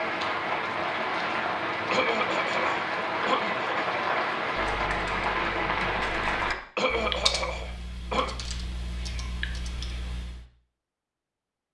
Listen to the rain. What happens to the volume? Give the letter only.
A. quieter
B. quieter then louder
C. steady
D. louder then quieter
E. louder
C.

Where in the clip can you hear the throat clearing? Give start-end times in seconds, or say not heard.
1.9-3.8, 6.8-8.3.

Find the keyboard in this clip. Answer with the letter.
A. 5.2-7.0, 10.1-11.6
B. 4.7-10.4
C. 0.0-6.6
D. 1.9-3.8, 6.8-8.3
B.